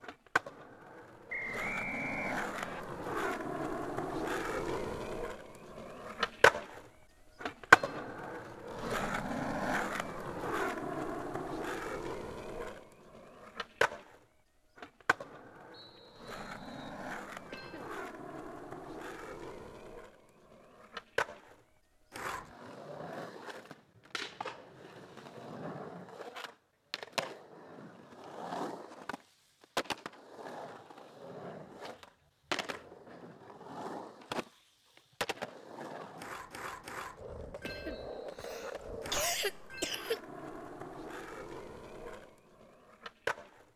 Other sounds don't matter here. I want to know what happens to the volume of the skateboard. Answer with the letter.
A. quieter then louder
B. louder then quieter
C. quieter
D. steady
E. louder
C.